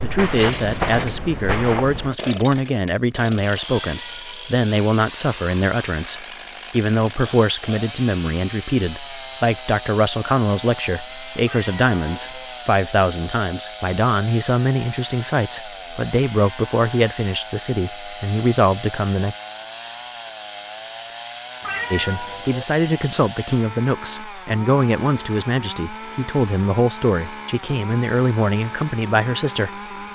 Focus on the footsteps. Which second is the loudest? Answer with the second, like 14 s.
1 s.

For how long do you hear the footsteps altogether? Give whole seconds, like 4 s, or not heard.
2 s.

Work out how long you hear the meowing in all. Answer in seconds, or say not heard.
3 s.